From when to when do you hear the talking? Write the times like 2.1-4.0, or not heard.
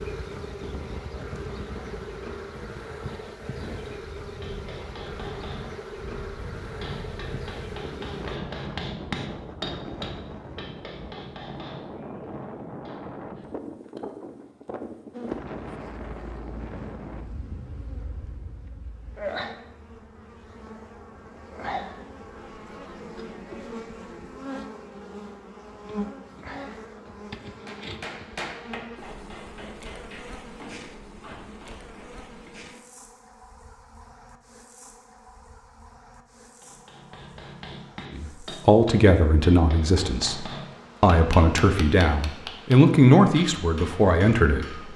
38.1-44.9.